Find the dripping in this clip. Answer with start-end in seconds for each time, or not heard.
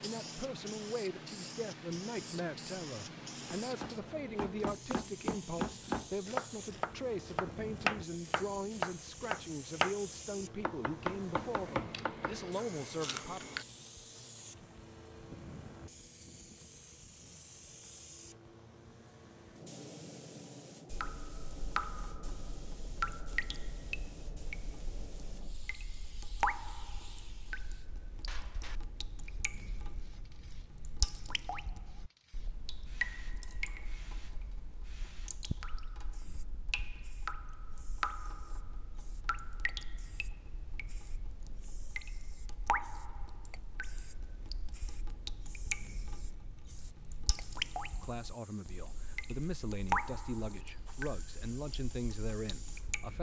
20.9-53.1.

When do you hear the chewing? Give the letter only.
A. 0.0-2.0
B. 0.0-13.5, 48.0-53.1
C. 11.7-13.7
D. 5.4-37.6
C.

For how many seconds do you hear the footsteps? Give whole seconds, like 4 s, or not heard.
not heard.